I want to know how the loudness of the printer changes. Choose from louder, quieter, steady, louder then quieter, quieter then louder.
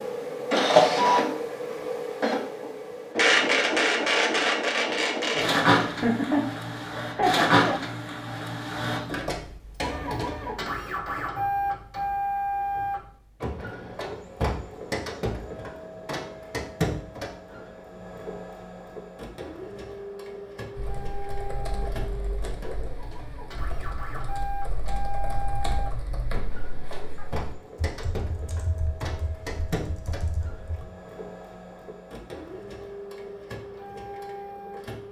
quieter.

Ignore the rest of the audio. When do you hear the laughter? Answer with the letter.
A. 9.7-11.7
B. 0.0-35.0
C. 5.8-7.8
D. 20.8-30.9
C.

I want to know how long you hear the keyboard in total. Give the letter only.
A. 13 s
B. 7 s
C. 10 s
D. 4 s
C.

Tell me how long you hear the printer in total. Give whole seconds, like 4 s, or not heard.
35 s.